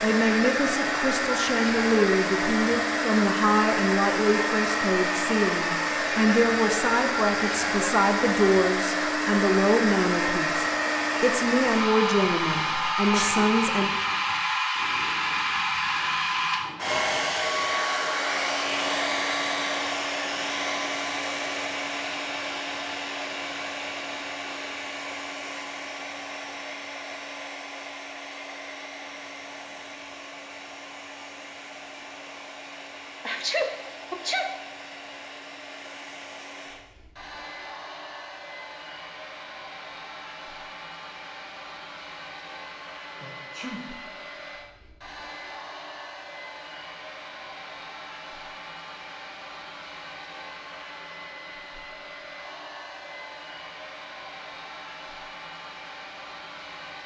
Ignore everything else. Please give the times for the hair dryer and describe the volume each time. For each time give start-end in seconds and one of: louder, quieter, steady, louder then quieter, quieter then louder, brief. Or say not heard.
0.0-57.0 quieter.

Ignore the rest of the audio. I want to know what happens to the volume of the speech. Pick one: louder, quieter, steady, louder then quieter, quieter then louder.
steady.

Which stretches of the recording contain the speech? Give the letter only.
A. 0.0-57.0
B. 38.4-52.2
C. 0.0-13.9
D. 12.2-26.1
C.